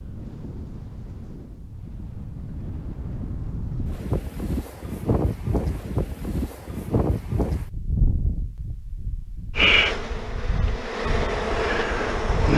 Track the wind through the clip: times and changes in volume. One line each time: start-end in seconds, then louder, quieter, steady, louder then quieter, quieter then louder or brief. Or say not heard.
0.0-12.5 louder then quieter.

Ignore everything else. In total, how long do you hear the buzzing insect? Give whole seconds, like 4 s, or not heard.
3 s.